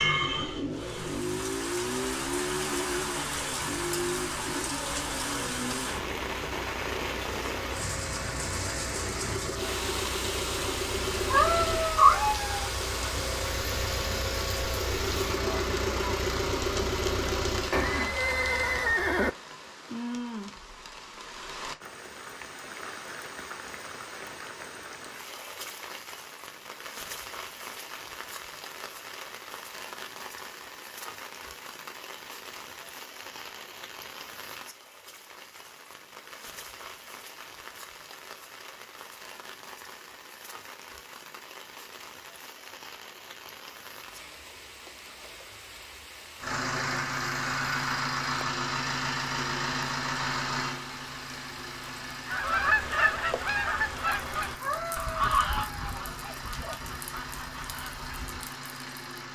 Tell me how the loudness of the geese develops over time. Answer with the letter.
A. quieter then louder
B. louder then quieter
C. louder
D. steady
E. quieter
E.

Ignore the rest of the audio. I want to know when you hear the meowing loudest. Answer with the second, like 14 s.
12 s.